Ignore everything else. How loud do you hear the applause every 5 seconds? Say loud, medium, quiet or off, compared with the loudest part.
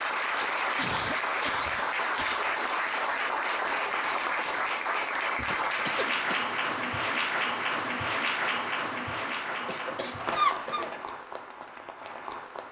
loud, loud, medium.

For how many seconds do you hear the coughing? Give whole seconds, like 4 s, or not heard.
4 s.